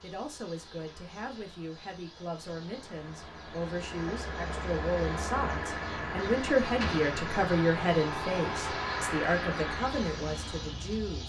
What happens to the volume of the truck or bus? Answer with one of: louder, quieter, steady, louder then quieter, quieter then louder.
louder.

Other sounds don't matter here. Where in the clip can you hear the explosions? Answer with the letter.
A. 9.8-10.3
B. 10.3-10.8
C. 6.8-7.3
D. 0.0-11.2
C.